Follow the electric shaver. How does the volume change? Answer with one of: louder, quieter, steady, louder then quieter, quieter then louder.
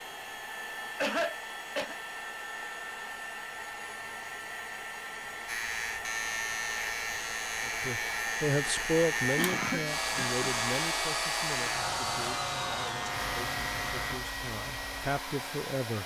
steady.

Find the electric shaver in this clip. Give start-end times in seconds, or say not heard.
5.5-14.2.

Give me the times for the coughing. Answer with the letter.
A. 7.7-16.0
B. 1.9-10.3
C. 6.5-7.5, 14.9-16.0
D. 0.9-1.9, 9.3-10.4
D.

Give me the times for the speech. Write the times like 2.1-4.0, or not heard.
7.7-16.0.